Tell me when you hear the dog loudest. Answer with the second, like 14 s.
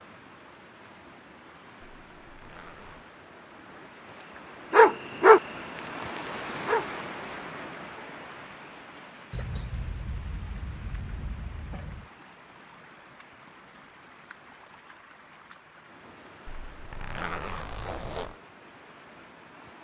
5 s.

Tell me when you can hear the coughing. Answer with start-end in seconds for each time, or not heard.
9.3-12.1.